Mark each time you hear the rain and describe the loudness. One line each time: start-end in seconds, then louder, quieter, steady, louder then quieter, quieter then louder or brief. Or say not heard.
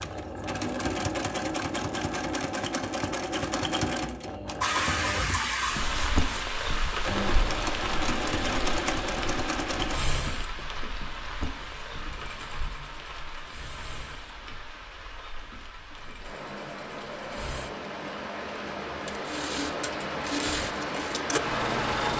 4.6-22.1 quieter then louder.